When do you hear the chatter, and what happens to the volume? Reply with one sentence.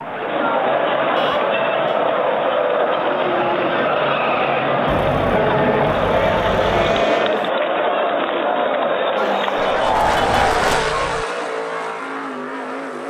You can hear the chatter from 0.0 to 10.8 s, at a steady volume.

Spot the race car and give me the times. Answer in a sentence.
The race car can be heard from 0.0 to 7.5 s and from 9.2 to 13.0 s.